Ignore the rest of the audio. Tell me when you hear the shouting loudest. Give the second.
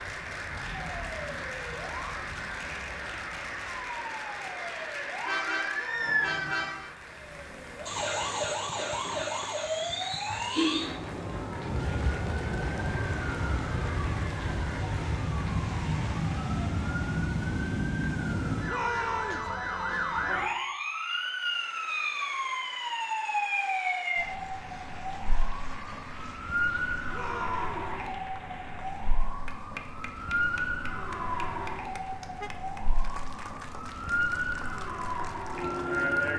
19 s.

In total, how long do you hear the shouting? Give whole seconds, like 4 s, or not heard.
2 s.